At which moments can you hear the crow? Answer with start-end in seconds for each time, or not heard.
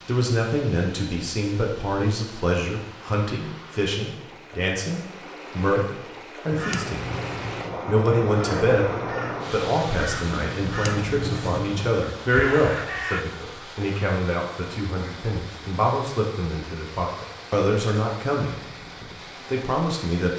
6.5-13.2.